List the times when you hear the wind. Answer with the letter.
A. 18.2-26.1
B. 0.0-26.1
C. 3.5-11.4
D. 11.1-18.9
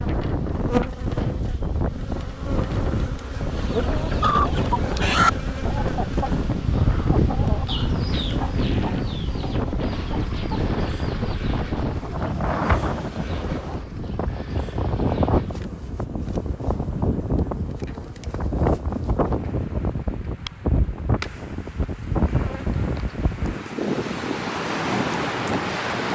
B.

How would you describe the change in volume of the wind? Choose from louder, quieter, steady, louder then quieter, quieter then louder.
steady.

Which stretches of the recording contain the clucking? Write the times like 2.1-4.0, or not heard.
3.5-11.4.